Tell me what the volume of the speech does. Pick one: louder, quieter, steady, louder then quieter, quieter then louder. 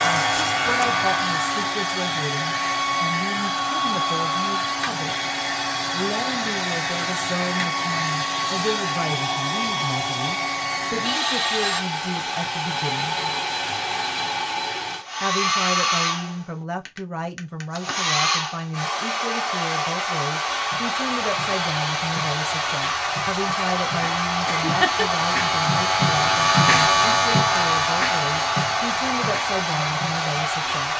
steady.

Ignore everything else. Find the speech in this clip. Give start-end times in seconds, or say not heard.
0.0-5.2, 5.9-13.2, 15.2-30.9.